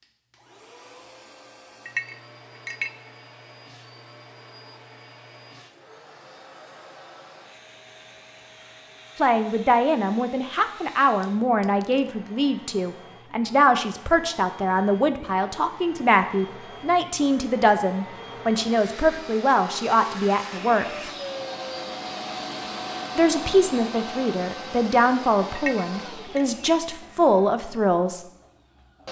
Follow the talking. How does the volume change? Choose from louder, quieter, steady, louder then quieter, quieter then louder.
steady.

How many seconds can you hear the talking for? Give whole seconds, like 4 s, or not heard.
17 s.